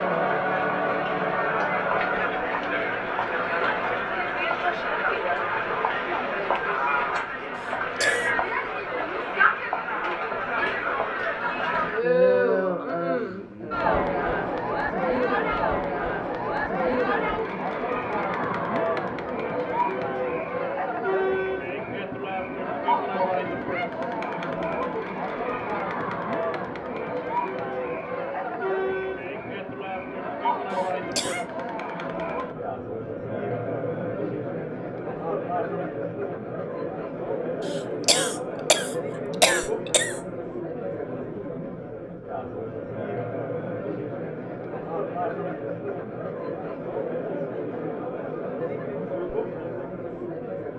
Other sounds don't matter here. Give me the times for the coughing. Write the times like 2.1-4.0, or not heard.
7.5-8.3, 30.7-31.4, 37.6-40.2.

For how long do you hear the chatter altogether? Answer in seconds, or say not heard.
51 s.